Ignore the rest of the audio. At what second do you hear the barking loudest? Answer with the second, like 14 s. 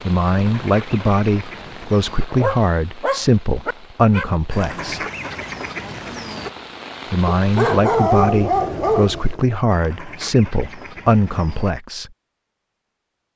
8 s.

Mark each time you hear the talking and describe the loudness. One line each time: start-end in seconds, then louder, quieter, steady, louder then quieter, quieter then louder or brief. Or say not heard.
0.0-5.0 steady
7.1-12.1 steady.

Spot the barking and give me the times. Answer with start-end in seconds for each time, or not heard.
2.3-4.2, 7.2-9.6.